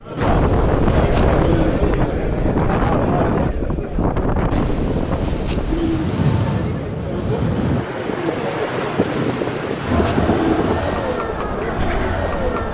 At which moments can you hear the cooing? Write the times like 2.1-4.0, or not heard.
0.1-1.9, 4.5-6.7, 9.1-11.2.